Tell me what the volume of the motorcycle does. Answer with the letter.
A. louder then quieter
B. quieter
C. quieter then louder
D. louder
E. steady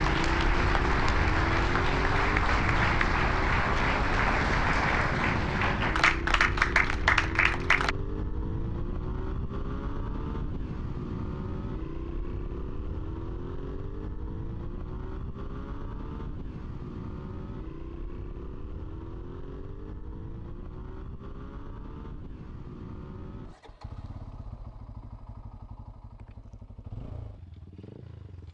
B.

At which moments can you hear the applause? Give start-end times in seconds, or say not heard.
0.0-8.0.